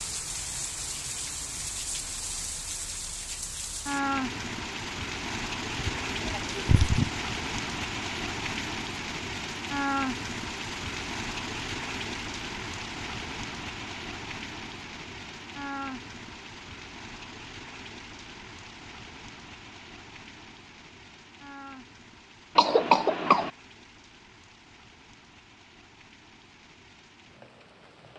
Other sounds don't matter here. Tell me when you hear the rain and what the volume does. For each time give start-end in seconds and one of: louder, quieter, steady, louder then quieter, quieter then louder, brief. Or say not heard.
0.0-28.1 quieter.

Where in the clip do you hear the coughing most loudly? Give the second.
23 s.